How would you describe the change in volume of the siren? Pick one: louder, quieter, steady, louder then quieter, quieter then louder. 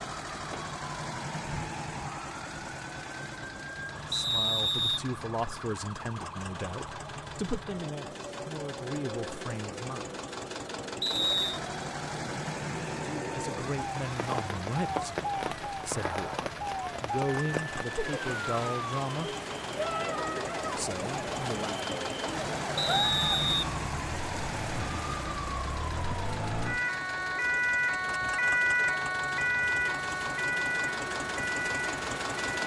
louder.